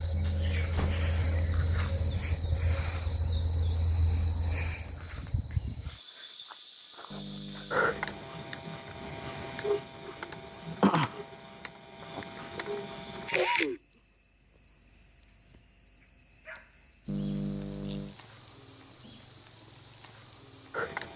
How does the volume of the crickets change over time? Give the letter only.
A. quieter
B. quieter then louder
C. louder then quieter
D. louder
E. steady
A.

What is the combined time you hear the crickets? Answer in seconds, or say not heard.
21 s.